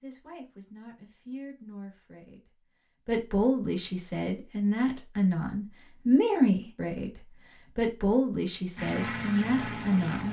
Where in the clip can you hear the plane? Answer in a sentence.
The plane can be heard from 8.8 to 10.2 s.